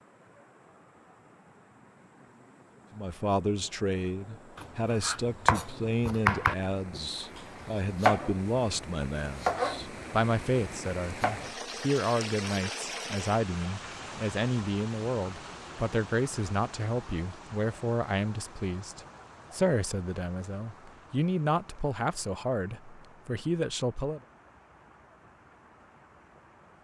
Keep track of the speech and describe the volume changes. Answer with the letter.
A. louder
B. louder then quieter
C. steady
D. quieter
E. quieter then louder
C.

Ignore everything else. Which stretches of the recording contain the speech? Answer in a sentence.
You can hear the speech from 3.0 to 24.2 s.